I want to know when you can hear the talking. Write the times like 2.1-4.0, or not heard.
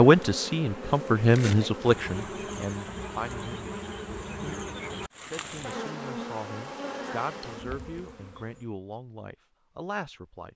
0.0-3.7, 5.2-10.5.